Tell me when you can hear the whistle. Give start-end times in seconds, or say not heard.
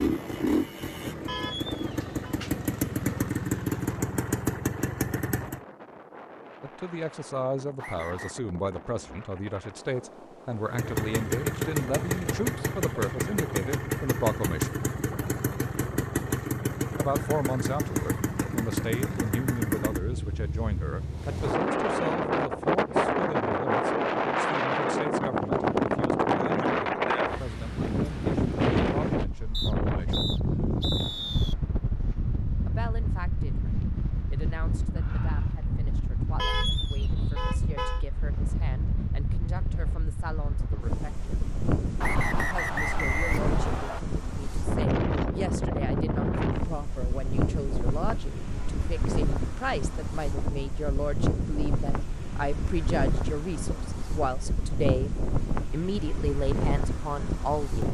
7.8-8.4, 29.5-31.6, 42.0-44.0.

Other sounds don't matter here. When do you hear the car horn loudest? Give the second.
37 s.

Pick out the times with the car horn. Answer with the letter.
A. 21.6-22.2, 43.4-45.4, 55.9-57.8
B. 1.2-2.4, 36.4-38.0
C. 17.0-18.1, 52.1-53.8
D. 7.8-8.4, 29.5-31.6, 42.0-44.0
B.